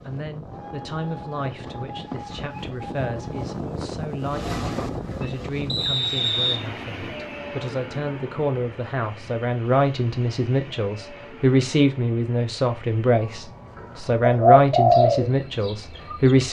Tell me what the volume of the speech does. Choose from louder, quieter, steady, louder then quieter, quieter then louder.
louder.